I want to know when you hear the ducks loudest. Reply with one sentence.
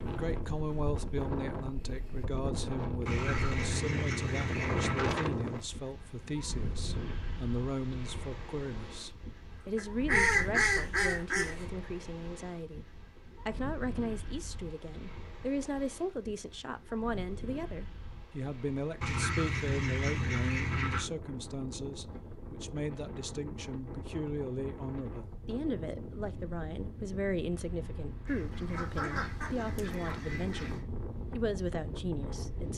The loudest moment of the ducks is at 10 seconds.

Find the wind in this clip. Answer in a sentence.
The wind can be heard from 0.0 to 32.7 s.